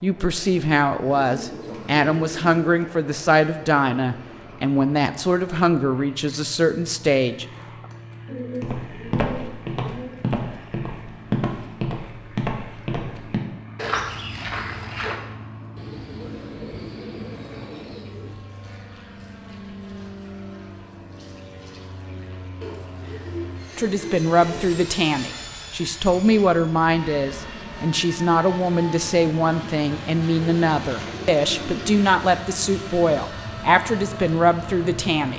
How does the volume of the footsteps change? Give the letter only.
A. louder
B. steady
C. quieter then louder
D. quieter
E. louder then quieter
B.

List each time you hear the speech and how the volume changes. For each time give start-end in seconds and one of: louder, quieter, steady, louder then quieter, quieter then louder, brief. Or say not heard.
0.0-7.5 steady
23.8-35.3 steady.